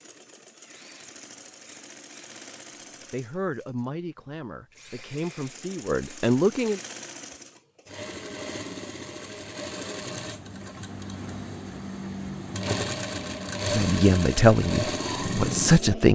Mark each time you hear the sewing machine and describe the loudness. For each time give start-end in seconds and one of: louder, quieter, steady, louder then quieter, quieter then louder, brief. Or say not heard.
0.0-16.1 louder.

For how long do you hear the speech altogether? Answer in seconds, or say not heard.
6 s.